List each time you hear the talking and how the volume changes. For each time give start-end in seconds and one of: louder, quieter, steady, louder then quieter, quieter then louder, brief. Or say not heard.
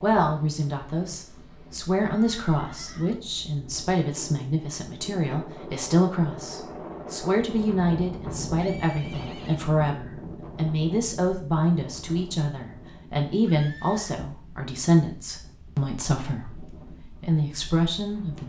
0.0-18.4 steady.